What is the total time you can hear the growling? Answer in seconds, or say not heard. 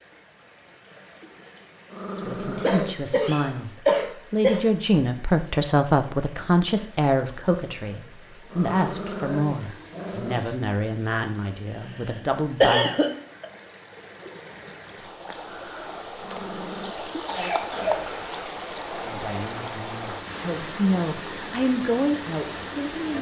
4 s.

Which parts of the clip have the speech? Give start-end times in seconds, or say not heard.
2.1-12.9, 18.9-23.1.